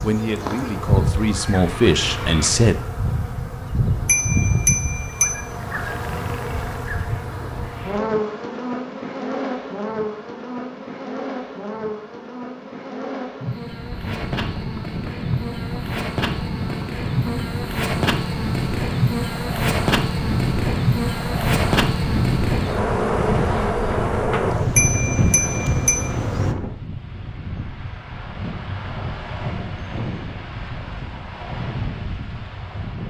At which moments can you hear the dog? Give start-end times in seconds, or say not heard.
not heard.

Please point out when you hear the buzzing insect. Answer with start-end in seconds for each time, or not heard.
0.0-26.6.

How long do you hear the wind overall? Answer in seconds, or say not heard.
19 s.